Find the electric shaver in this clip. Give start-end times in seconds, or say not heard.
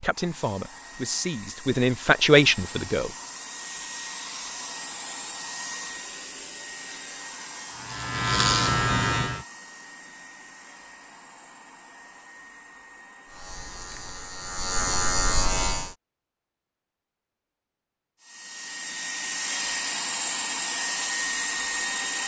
6.8-9.4, 13.2-15.9.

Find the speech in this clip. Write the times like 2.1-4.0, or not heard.
0.0-3.1.